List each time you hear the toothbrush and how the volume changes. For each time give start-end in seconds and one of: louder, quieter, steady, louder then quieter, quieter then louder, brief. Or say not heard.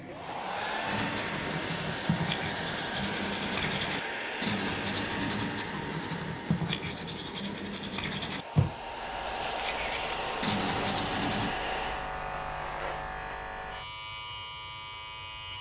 0.8-11.6 steady.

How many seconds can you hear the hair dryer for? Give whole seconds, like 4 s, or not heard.
12 s.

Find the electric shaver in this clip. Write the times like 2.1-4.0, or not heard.
8.9-15.5.